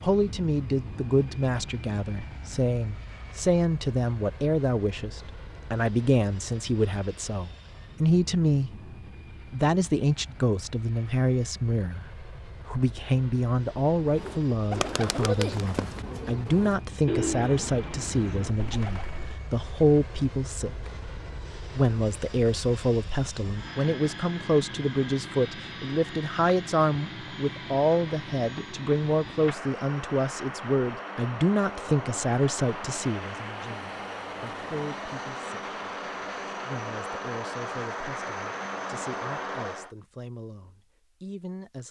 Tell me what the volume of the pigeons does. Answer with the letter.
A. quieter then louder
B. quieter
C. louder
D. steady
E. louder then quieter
B.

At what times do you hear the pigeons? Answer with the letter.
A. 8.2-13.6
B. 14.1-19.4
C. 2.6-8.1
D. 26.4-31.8
B.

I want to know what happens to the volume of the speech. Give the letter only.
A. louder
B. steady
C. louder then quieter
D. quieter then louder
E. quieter
E.